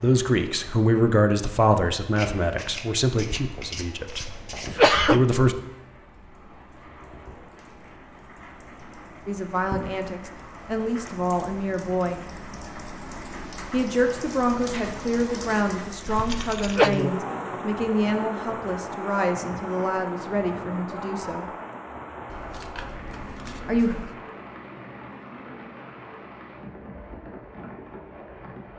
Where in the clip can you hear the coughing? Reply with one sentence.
You can hear the coughing from 4.1 to 5.4 s and from 16.1 to 16.9 s.